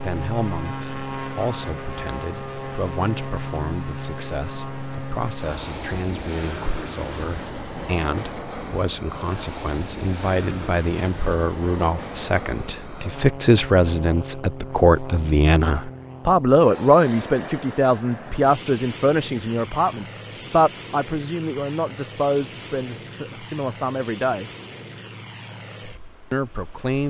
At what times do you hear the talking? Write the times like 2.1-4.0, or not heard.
0.0-24.5, 26.3-27.0.